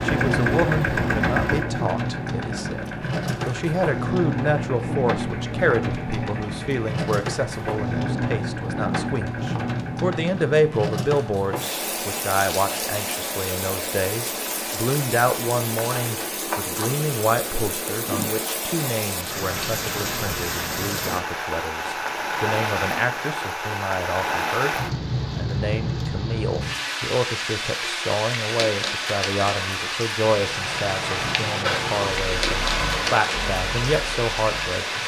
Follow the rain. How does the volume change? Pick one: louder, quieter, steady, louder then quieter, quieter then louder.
steady.